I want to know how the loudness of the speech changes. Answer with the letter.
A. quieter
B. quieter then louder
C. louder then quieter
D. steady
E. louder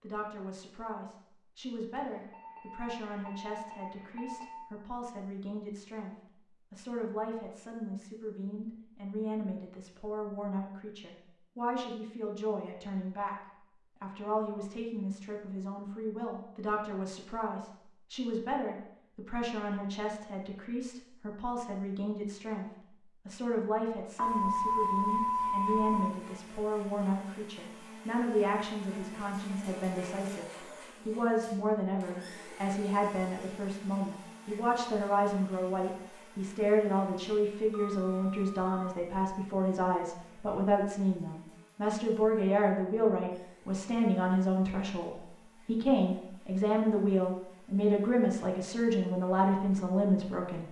E.